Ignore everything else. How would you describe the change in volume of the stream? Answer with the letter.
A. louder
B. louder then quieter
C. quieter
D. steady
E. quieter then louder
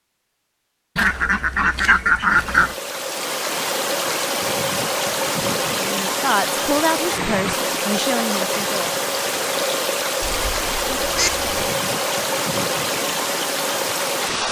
D.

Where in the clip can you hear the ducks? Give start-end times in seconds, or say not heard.
0.9-2.8, 10.2-11.5.